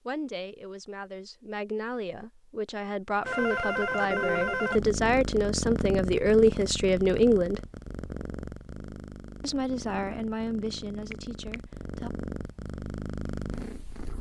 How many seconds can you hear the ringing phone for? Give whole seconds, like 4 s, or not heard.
2 s.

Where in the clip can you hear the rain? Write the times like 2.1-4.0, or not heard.
not heard.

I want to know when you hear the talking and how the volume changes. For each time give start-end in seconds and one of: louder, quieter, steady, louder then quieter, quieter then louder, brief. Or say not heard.
0.1-7.6 louder
9.4-12.1 brief.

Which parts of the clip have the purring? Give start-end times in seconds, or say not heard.
4.7-14.1.